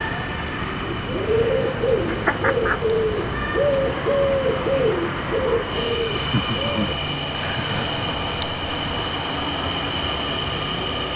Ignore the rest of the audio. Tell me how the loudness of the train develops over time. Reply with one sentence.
The volume of the train goes up.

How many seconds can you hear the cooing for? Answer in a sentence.
You can hear the cooing for 7 seconds altogether.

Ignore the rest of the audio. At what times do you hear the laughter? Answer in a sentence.
The laughter can be heard from 2.0 to 2.8 s and from 6.2 to 8.0 s.